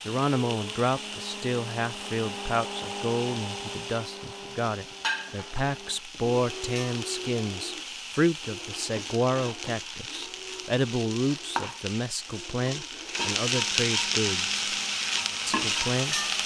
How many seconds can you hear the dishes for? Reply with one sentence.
The dishes can't be heard in this clip.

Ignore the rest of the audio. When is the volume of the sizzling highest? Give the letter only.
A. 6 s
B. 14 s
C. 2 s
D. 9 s
B.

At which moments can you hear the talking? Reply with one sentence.
You can hear the talking from 0.0 to 14.6 s and from 15.4 to 16.2 s.